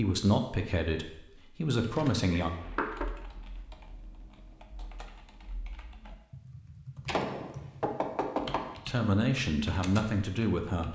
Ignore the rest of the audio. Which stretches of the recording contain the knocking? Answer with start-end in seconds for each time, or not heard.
2.4-3.1, 7.0-8.8.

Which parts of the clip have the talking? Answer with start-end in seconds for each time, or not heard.
0.0-2.5, 8.8-10.9.